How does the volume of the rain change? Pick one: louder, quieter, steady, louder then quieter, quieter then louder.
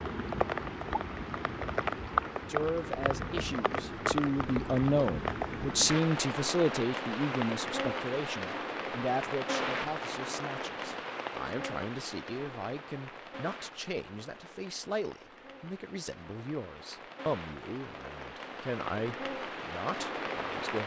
quieter then louder.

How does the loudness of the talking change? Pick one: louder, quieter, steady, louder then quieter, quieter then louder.
quieter.